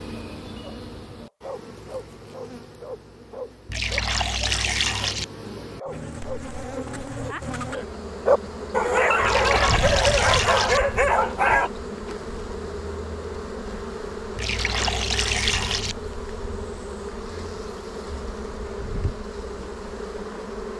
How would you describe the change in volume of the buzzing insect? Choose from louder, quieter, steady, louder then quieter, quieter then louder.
louder.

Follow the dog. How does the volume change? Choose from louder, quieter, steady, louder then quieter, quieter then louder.
louder.